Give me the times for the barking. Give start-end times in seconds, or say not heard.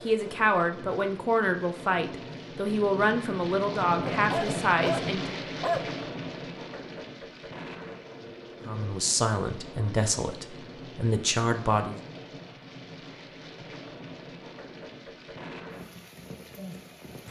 4.1-6.0.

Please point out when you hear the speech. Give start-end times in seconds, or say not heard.
0.1-5.3, 8.7-12.0.